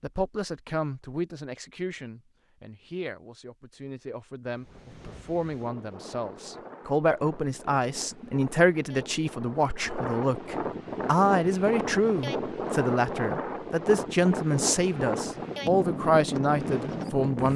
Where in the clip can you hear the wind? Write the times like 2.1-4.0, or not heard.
4.5-17.5.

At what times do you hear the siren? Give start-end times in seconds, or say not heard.
not heard.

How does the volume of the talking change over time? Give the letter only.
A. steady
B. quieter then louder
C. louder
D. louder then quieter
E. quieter
C.